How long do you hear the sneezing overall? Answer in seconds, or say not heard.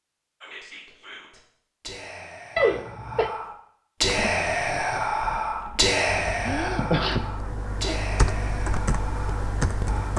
2 s.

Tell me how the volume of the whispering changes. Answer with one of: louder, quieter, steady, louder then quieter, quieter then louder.
louder then quieter.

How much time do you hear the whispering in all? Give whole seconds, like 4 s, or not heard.
10 s.